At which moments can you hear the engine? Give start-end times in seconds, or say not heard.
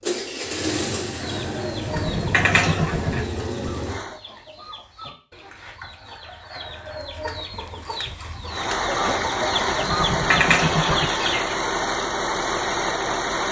0.0-4.2, 8.4-13.4.